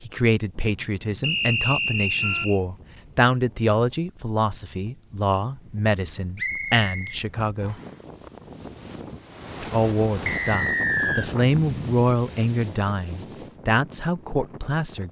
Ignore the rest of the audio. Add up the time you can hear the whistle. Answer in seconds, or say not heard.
4 s.